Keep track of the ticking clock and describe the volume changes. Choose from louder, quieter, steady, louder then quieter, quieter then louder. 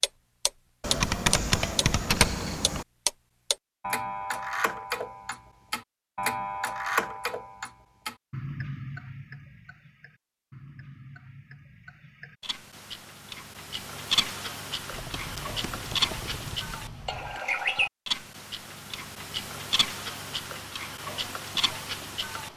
quieter then louder.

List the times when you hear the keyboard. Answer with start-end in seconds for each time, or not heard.
0.8-2.9, 14.9-17.4.